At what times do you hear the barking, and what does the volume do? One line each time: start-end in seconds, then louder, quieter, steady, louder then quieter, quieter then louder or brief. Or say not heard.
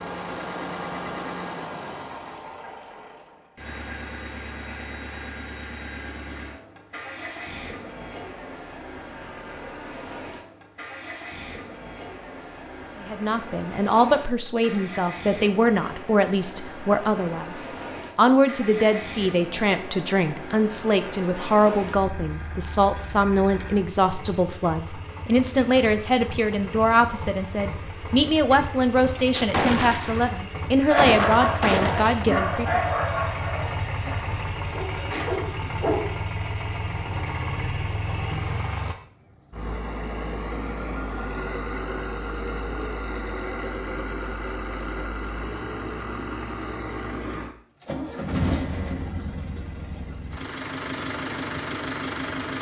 30.9-36.1 quieter then louder.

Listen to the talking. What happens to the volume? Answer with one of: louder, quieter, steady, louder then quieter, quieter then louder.
steady.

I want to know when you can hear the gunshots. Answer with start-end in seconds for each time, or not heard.
29.5-32.3.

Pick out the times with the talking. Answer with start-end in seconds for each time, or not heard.
13.0-32.9.